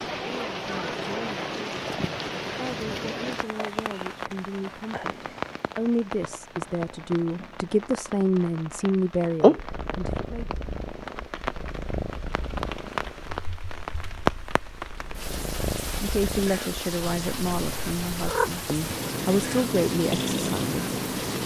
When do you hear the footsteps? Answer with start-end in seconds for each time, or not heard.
not heard.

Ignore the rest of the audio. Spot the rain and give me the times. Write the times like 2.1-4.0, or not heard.
0.0-21.4.